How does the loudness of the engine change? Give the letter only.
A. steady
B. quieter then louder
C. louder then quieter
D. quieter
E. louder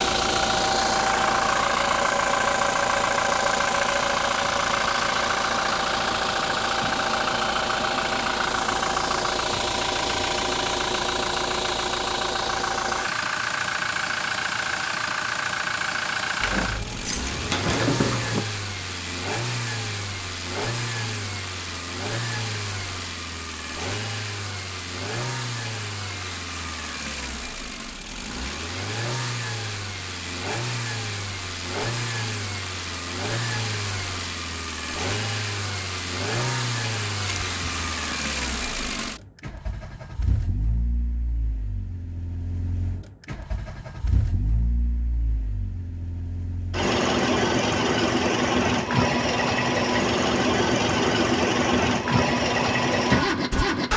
B.